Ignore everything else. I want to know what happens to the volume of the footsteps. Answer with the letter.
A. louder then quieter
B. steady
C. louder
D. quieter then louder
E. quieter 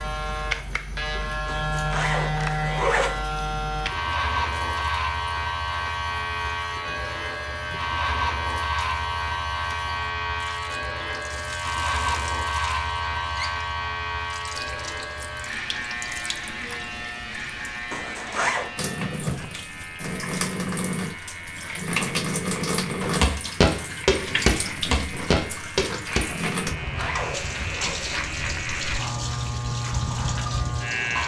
E.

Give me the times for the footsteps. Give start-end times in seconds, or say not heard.
23.2-30.8.